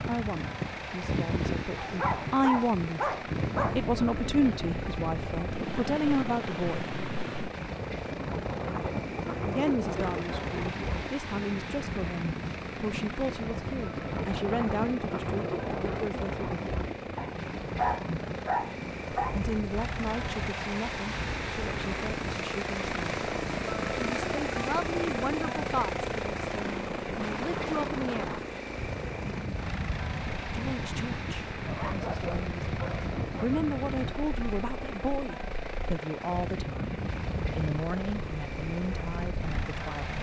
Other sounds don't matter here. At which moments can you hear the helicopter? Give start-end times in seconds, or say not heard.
0.0-40.1.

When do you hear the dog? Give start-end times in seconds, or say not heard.
1.8-3.9, 17.1-19.4, 31.6-33.5.